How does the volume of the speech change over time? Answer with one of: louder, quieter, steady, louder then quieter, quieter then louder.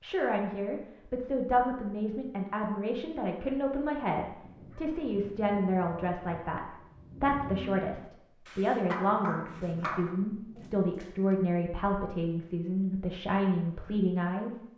steady.